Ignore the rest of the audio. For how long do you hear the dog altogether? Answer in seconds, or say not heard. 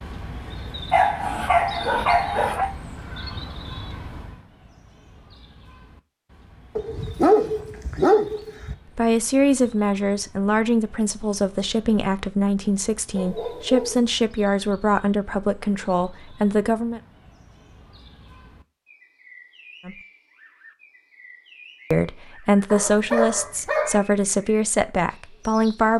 6 s.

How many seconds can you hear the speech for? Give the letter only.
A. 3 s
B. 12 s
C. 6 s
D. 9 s
B.